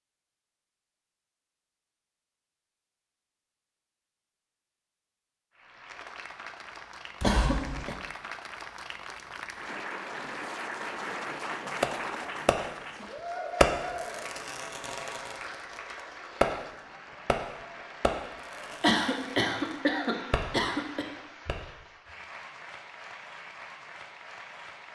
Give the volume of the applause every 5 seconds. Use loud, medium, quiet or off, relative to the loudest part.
off, medium, loud, medium, medium.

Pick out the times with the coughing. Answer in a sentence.
You can hear the coughing from 7.2 to 8.0 s and from 18.8 to 21.1 s.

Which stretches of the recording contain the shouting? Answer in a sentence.
You can't hear the shouting here.